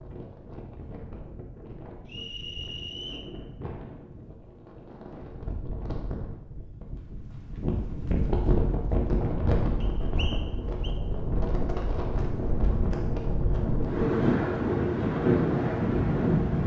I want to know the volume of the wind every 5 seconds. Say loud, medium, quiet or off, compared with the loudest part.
quiet, medium, medium, loud.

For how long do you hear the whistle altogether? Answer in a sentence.
The whistle can be heard for 2 seconds in total.